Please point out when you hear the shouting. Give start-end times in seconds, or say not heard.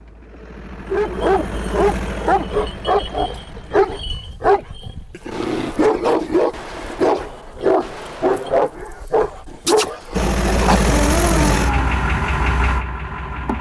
not heard.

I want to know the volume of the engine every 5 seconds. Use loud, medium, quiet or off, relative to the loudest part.
medium, off, loud.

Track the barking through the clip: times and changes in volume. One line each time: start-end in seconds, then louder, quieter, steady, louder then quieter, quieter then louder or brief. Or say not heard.
0.9-11.9 steady.